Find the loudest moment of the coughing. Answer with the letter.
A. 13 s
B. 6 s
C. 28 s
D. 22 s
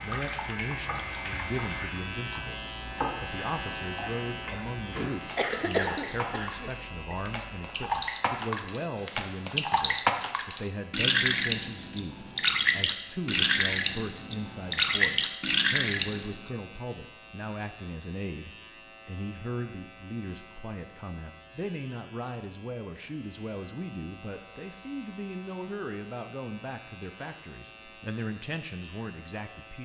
B.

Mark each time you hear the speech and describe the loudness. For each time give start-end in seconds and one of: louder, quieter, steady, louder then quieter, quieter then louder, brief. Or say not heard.
0.0-29.7 steady.